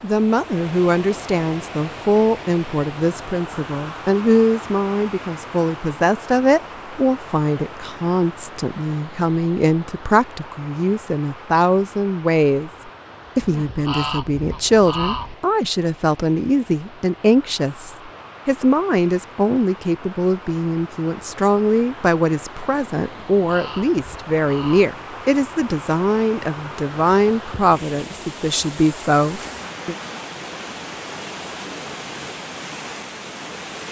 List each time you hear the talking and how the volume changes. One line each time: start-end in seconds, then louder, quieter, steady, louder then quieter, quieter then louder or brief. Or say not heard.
0.0-12.7 steady
13.3-29.9 steady.